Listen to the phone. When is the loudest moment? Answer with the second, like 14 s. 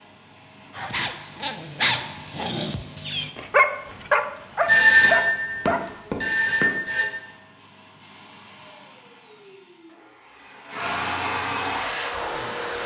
5 s.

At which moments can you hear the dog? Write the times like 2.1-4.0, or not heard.
0.8-6.0.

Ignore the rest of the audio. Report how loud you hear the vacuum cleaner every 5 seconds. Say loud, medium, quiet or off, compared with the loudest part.
quiet, quiet, loud.